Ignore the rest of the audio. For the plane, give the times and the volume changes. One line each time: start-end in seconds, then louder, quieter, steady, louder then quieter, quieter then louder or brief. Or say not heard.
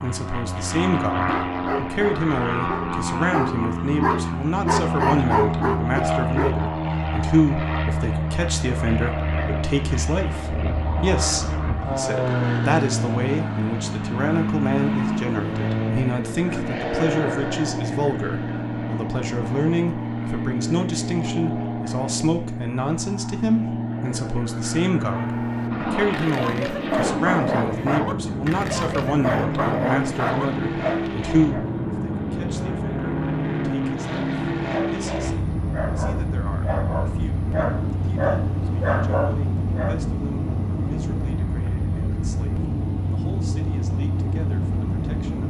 0.0-45.4 steady.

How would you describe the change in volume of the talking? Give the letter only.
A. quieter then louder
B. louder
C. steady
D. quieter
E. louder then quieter
D.